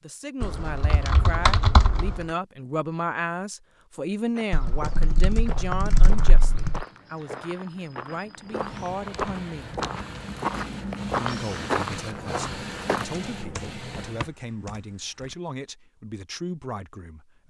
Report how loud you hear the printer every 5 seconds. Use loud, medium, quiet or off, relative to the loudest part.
off, medium, loud, off.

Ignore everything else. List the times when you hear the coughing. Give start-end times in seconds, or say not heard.
not heard.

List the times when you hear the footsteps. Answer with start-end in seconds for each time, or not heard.
4.3-13.1.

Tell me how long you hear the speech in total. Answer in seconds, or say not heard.
16 s.